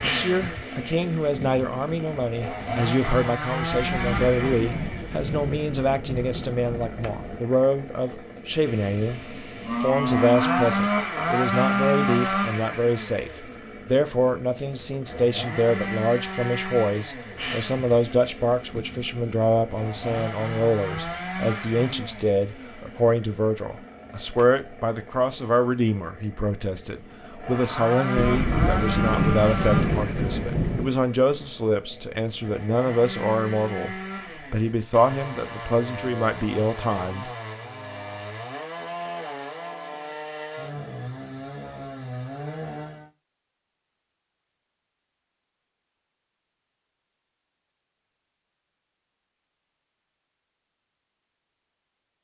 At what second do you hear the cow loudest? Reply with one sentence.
The loudest moment of the cow is at 10 seconds.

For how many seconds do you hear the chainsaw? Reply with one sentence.
You can hear the chainsaw for 43 seconds altogether.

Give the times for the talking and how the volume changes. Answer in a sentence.
The talking can be heard from 0.0 to 37.3 s, at a steady volume.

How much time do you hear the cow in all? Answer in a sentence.
You can hear the cow for 2 seconds altogether.